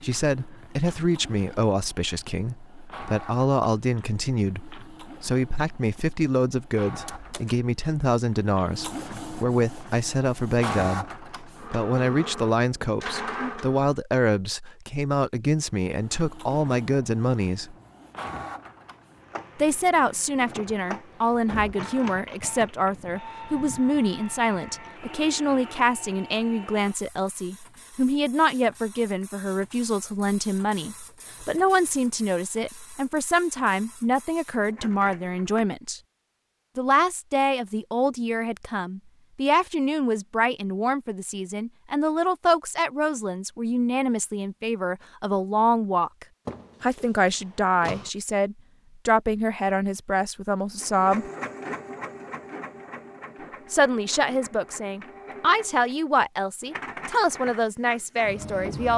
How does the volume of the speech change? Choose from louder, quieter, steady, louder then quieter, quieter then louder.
steady.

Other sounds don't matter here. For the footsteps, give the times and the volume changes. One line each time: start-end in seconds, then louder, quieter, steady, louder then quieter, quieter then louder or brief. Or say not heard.
not heard.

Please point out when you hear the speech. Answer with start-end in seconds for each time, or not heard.
0.0-17.8, 19.6-36.0, 36.8-51.3, 53.7-58.9.